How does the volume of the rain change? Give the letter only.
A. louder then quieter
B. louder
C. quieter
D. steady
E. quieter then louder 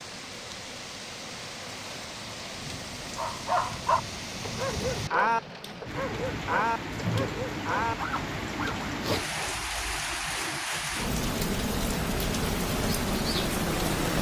B.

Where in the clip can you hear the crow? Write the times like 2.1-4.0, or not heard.
not heard.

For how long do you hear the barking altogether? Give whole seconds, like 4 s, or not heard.
6 s.